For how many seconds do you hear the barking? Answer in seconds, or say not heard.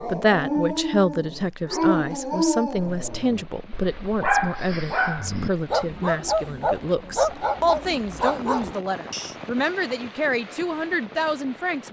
9 s.